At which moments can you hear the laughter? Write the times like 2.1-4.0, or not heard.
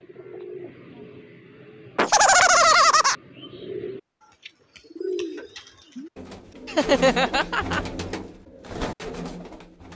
1.9-3.1, 6.7-7.8.